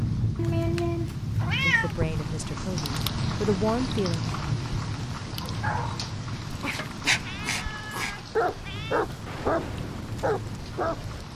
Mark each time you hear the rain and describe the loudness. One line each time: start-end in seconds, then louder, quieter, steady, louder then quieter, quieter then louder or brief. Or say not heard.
0.0-11.3 quieter.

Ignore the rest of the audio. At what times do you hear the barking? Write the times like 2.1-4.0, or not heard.
5.4-11.2.